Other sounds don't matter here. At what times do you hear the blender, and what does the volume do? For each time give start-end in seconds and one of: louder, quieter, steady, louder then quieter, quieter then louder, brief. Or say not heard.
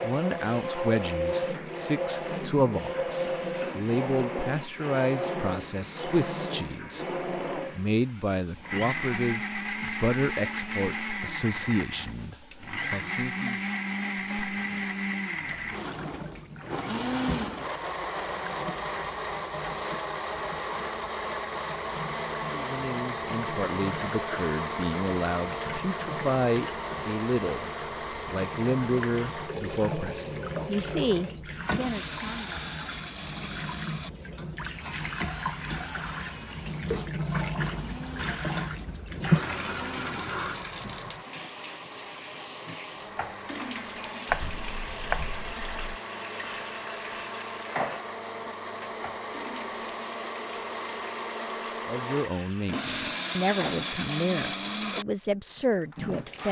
0.0-56.4 quieter then louder.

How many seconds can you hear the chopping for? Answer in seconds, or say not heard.
2 s.